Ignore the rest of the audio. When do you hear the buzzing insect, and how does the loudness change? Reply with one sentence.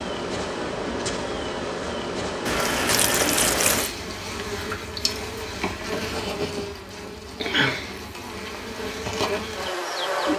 You can hear the buzzing insect from 0.0 to 10.3 s, at a steady volume.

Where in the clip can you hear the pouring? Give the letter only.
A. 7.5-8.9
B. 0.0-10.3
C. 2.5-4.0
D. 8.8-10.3
C.